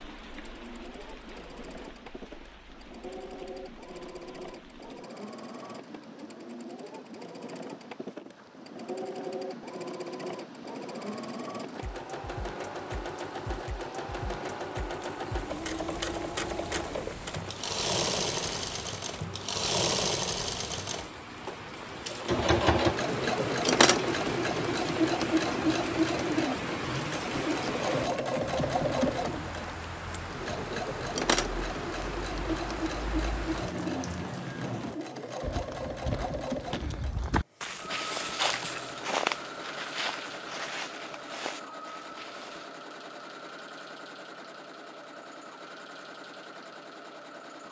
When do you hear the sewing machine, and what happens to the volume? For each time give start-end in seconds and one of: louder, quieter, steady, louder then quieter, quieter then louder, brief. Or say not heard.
0.0-47.6 louder then quieter.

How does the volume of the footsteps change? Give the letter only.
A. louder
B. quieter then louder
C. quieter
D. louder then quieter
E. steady
D.